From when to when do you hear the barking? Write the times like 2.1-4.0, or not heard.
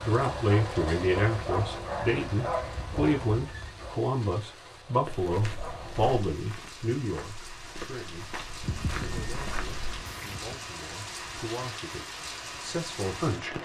0.0-6.2.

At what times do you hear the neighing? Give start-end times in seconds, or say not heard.
8.6-10.7.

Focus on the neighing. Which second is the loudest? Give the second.
9 s.